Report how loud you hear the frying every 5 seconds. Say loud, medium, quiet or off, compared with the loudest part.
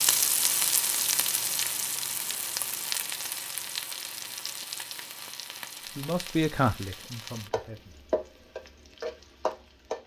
loud, medium.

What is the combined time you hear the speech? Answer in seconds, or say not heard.
2 s.